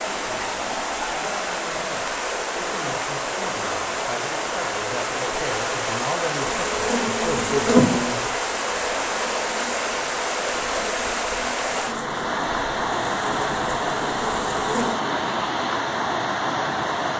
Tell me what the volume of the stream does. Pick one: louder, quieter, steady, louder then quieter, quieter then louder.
steady.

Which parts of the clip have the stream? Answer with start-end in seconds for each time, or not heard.
0.0-17.1.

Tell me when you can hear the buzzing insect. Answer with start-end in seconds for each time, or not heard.
6.4-14.9.